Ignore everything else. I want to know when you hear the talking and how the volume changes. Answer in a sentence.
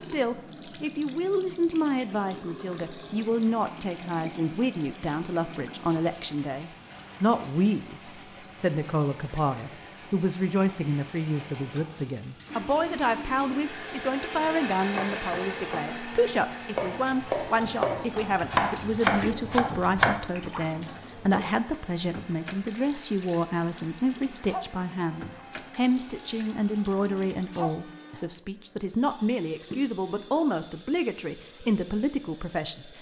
You can hear the talking from 0.0 to 32.9 s, at a steady volume.